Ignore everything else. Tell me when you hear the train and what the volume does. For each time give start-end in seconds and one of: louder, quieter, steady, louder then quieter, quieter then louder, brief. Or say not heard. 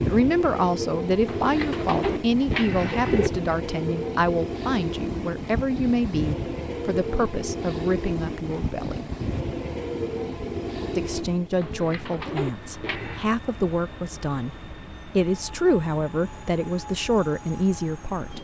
0.0-18.3 quieter.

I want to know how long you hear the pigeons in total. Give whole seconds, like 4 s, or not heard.
4 s.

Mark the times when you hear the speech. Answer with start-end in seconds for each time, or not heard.
0.1-9.1, 10.9-18.3.